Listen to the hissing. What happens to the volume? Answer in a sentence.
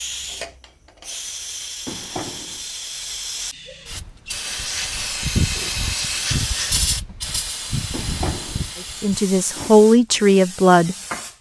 The loudness of the hissing goes up, then down.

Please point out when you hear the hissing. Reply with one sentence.
You can hear the hissing from 0.0 to 11.3 s.